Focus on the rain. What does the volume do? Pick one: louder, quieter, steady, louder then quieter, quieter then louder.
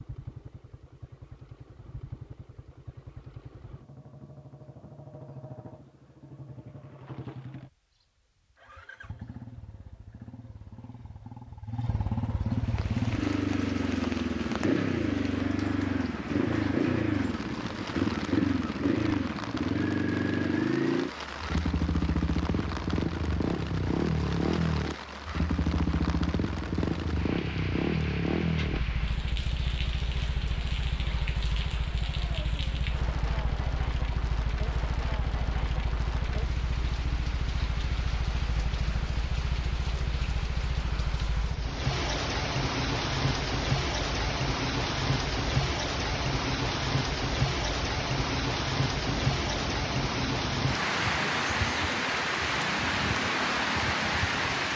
louder.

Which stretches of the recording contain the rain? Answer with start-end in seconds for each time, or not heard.
12.4-54.7.